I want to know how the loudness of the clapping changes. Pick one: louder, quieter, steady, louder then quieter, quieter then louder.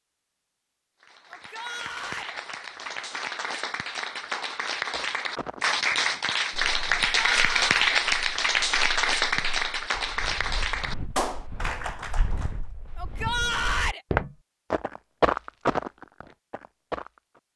louder then quieter.